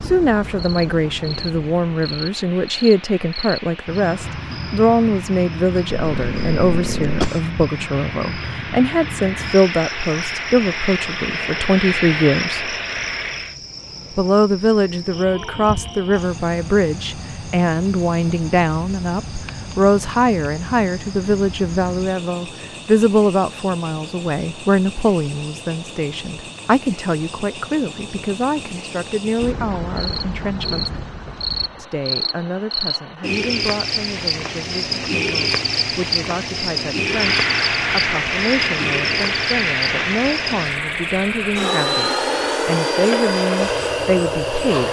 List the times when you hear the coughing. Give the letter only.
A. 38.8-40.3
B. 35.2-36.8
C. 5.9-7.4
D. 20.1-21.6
C.